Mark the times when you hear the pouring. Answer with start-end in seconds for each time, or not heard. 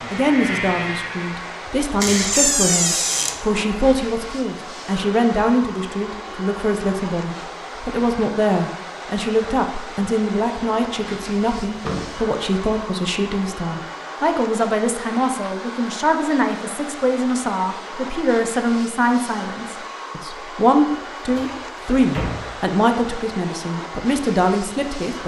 not heard.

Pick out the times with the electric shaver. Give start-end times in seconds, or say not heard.
0.0-1.6.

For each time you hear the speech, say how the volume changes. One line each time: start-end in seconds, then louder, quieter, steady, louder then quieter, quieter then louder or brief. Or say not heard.
0.1-25.2 steady.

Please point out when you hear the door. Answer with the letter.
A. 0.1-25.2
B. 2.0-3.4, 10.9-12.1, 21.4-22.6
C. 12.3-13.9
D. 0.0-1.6
B.